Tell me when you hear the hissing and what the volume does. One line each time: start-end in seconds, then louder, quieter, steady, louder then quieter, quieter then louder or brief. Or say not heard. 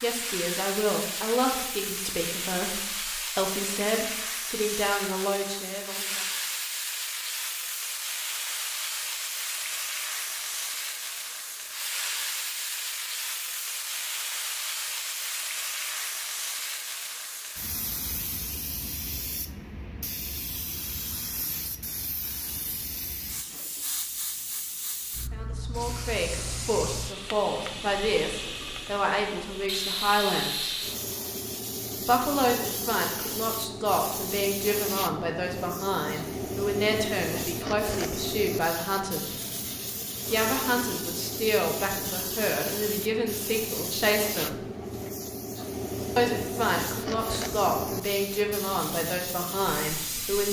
0.0-50.4 steady.